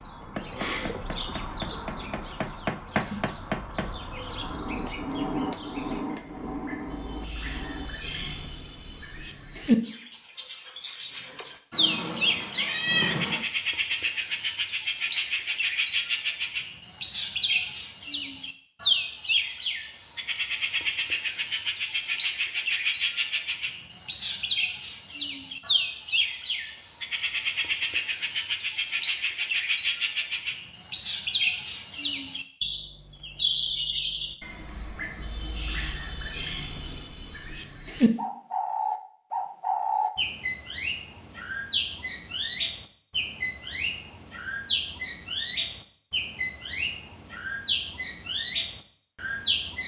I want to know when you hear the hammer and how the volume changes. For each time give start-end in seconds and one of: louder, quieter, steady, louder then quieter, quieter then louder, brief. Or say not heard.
0.2-8.3 louder then quieter.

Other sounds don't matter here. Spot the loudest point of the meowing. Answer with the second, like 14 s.
13 s.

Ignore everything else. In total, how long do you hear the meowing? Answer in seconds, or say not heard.
2 s.